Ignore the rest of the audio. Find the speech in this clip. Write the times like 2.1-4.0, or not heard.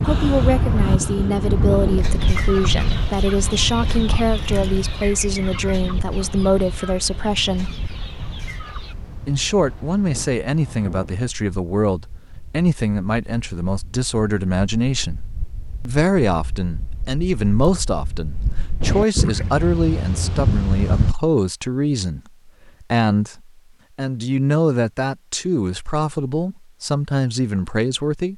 0.0-7.7, 9.2-15.2, 15.8-28.3.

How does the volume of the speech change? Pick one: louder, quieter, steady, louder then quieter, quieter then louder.
steady.